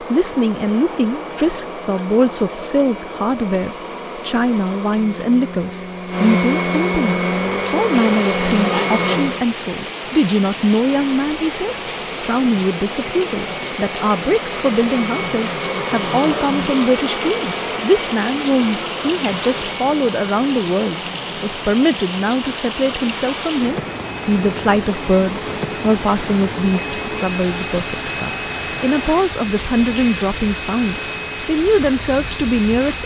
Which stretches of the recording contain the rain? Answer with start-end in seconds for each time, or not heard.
7.9-33.0.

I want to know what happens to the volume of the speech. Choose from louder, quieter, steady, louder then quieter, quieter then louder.
steady.